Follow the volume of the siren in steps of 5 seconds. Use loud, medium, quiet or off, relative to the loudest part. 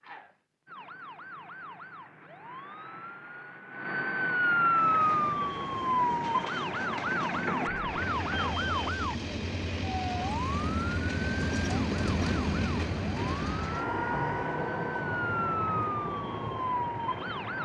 loud, loud, medium, loud.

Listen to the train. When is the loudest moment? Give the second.
12 s.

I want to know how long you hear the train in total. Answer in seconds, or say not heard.
13 s.